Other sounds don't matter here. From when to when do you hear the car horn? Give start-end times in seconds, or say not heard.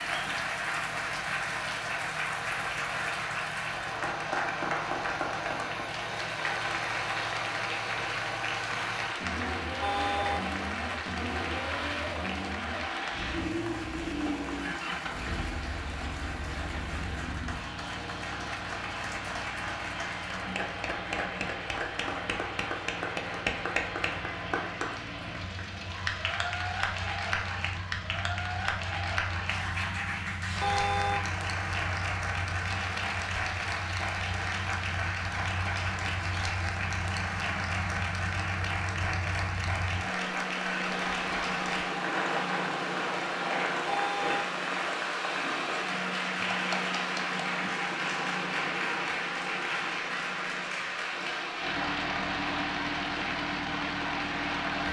9.8-10.5, 30.6-31.2, 43.9-44.5.